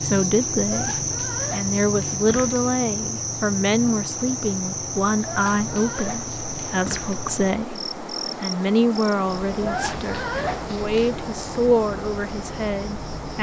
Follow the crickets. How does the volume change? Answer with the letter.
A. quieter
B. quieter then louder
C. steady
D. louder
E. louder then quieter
A.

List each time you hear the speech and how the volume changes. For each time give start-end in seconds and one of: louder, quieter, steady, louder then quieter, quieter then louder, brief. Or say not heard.
0.0-13.3 steady.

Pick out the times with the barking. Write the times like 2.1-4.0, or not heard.
0.7-2.6, 5.2-7.2, 9.6-11.2.